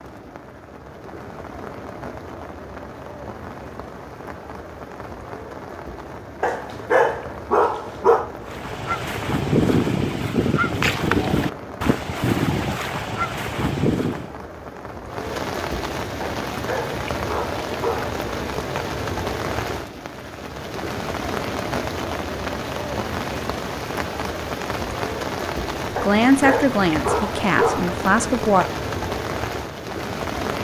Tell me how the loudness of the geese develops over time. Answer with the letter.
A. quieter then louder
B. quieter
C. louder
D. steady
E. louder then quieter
D.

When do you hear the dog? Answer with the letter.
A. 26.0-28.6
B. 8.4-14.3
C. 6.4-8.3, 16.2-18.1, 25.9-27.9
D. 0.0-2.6
C.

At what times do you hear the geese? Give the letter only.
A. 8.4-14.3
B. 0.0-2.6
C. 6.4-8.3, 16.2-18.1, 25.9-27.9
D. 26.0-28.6
A.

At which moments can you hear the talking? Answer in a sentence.
The talking can be heard from 26.0 to 28.6 s.